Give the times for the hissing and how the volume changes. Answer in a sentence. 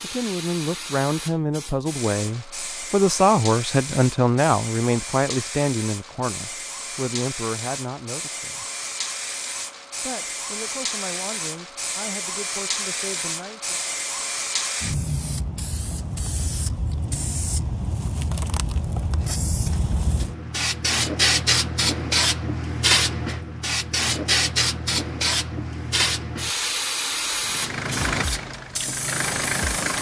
You can hear the hissing from 0.0 to 29.9 s, getting louder.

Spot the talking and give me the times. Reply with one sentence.
The talking can be heard from 0.0 to 8.7 s and from 10.0 to 13.8 s.